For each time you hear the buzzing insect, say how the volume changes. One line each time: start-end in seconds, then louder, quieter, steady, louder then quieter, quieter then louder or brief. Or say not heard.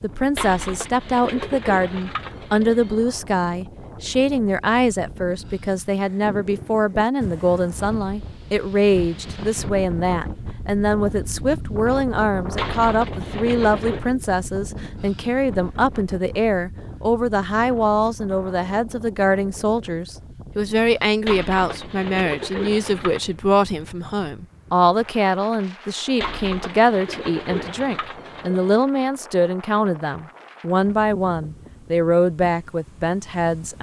not heard.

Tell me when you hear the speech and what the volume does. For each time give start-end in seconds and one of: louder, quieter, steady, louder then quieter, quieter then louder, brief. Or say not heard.
0.0-33.7 steady.